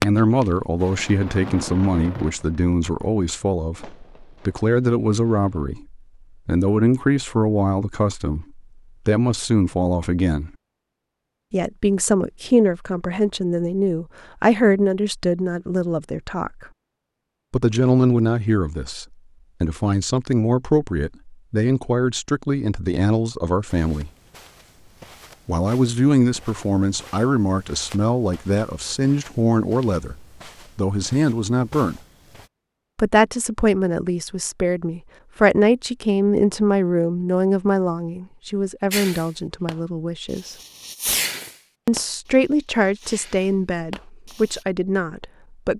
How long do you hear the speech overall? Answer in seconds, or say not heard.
40 s.